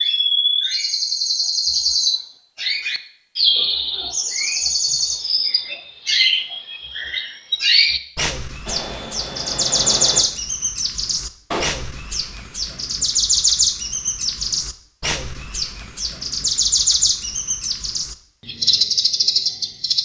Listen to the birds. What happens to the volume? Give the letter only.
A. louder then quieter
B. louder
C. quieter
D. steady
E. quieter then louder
D.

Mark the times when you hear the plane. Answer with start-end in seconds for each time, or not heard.
8.7-10.2.